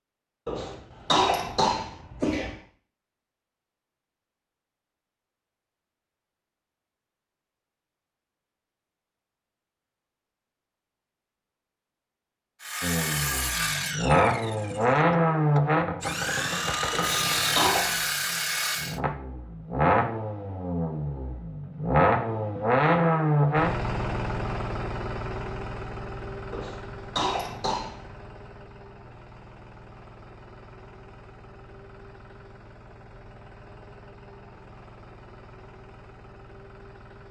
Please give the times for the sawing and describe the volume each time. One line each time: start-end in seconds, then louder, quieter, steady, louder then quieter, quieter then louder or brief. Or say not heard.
12.6-19.0 quieter then louder.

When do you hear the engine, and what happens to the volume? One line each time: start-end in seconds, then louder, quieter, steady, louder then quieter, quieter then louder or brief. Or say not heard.
12.8-37.2 quieter.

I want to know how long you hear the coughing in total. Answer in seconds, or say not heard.
5 s.